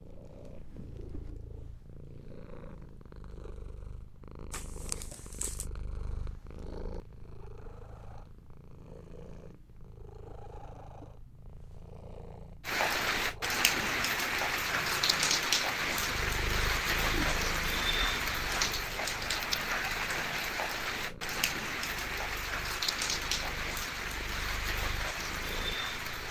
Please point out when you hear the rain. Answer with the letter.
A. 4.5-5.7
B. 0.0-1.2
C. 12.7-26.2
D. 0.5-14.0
C.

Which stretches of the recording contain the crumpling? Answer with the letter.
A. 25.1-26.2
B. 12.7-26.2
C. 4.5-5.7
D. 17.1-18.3
C.